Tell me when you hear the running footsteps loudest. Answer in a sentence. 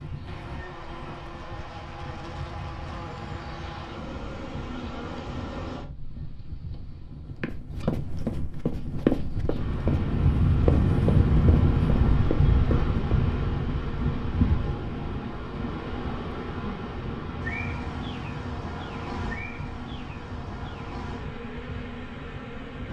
The volume of the running footsteps peaks at 9 seconds.